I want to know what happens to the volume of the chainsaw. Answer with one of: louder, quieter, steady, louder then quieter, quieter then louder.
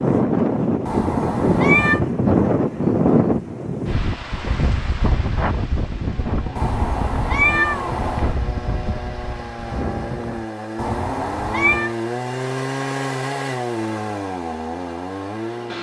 louder.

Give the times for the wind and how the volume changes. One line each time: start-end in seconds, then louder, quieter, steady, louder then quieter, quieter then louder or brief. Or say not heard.
0.0-10.4 quieter.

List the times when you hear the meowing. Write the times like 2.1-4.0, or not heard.
0.8-2.0, 6.5-8.3, 10.8-11.9.